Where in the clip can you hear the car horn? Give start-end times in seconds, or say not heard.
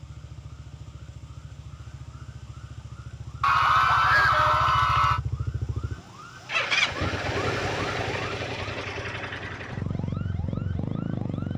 not heard.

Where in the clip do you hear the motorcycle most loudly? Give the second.
7 s.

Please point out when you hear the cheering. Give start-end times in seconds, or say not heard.
3.4-5.2.